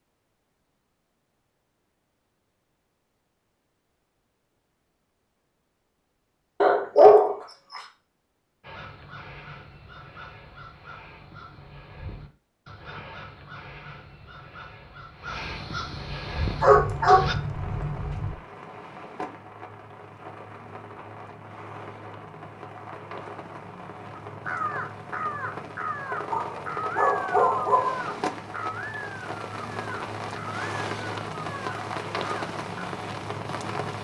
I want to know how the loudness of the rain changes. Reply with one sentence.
The loudness of the rain goes up.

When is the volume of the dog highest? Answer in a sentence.
The volume of the dog peaks at 7 seconds.